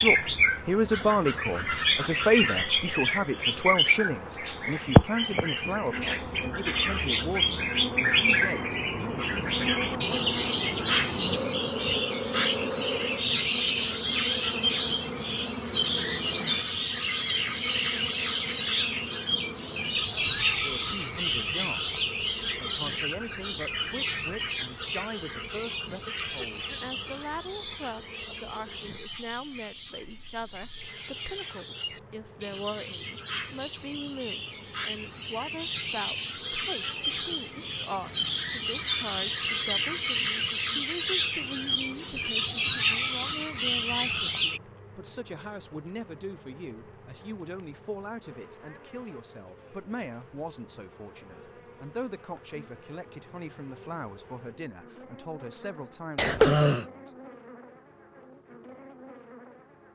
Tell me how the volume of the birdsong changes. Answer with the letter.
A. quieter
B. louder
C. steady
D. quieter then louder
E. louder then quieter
D.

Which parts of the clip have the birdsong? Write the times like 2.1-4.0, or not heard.
0.0-44.6.